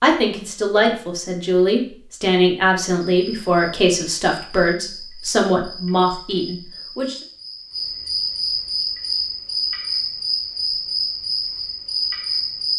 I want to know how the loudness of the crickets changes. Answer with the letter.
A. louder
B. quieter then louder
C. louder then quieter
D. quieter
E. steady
A.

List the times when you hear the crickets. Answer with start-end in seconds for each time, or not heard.
3.2-12.7.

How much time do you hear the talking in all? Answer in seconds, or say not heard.
7 s.